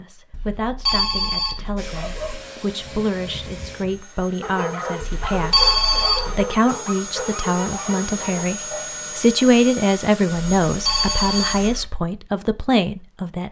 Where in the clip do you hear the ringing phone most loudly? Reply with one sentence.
The loudest moment of the ringing phone is at 6 seconds.